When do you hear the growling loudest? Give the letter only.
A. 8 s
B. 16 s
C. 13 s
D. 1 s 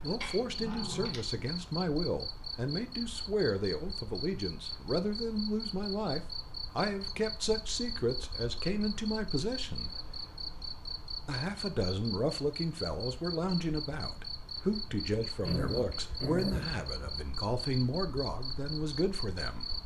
B.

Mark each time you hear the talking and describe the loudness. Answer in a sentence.
The talking can be heard from 0.0 to 9.9 s, at a steady volume; and from 11.2 to 19.7 s, at a steady volume.